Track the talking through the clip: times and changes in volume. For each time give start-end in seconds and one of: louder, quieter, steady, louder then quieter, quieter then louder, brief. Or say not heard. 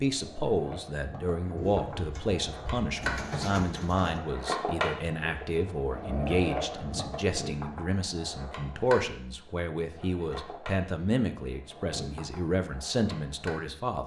0.0-14.0 steady.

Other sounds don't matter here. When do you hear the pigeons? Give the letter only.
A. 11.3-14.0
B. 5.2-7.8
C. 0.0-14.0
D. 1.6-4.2
D.